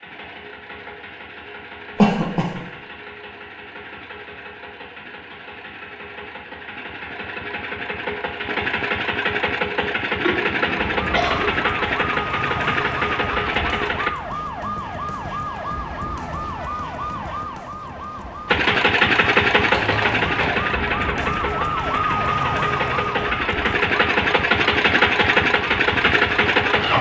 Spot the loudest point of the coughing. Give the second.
2 s.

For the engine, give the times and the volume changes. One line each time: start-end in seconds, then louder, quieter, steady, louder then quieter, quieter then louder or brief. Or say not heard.
0.0-14.1 louder
18.4-26.9 quieter then louder.